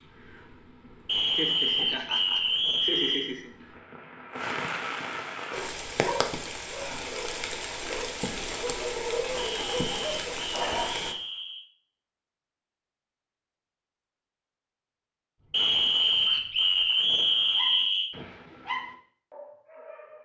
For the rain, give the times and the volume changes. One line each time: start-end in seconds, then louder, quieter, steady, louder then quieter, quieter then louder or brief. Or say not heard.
0.0-11.2 louder.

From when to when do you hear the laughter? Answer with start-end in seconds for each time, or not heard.
1.4-3.5.